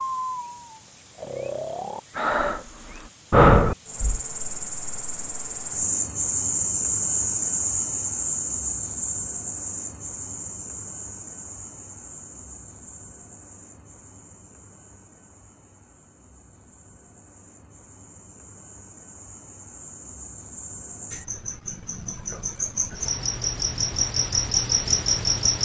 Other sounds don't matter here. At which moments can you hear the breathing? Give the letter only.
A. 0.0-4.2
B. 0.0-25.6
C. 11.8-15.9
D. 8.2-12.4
A.